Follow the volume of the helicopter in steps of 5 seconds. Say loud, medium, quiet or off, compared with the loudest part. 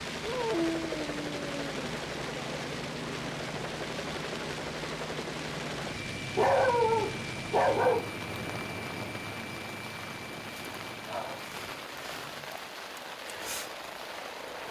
loud, loud, medium.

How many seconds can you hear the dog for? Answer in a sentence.
The dog can be heard for 5 seconds in total.